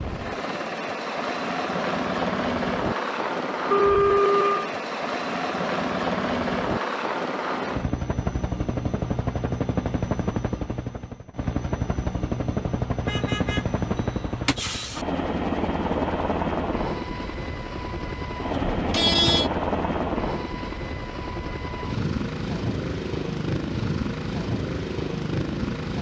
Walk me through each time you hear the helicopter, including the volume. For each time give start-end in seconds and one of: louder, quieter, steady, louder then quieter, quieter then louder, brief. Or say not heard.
0.0-25.9 steady.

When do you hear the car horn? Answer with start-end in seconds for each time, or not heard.
3.6-4.7, 13.1-15.1, 18.5-19.5.